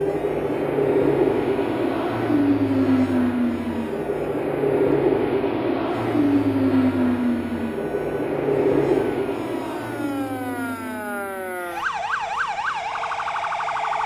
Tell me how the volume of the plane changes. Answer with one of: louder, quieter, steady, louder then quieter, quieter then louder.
quieter.